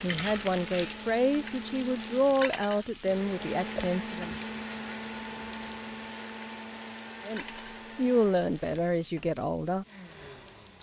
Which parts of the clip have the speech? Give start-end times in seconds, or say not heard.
0.0-4.3, 7.2-9.8.